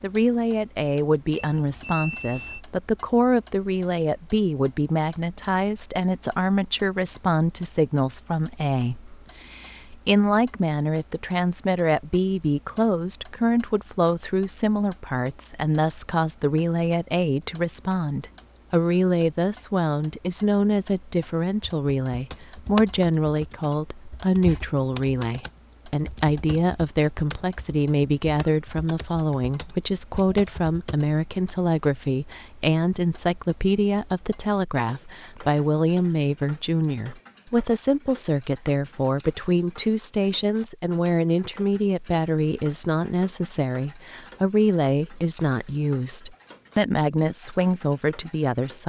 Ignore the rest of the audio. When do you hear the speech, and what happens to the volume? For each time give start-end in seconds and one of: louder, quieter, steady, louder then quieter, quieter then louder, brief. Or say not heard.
0.0-48.8 steady.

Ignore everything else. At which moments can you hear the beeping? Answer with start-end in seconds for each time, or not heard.
1.4-2.6.